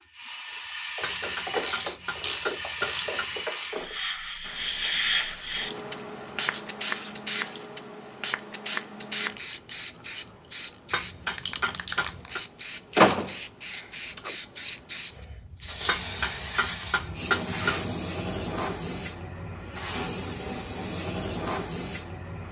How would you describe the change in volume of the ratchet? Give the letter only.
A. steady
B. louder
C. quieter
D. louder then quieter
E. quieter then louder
C.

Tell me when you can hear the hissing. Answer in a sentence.
You can hear the hissing from 0.0 to 22.4 s.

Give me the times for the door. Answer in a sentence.
You can hear the door from 12.9 to 14.3 s.